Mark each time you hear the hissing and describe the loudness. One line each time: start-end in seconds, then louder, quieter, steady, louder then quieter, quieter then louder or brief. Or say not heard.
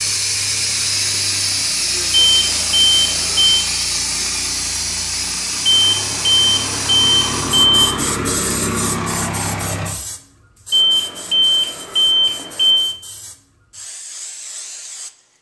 0.0-15.3 quieter.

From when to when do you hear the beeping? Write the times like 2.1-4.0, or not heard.
2.1-3.6, 5.7-7.8, 10.7-12.9.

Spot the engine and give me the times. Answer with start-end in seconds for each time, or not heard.
0.0-9.9.